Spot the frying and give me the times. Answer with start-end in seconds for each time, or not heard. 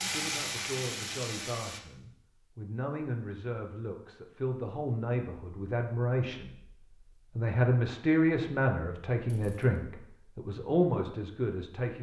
0.0-1.8.